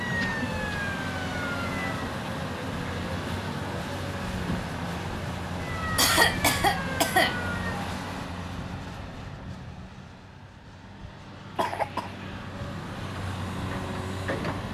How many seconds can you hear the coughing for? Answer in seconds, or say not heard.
3 s.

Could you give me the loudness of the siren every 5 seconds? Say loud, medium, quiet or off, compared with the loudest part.
loud, loud, off.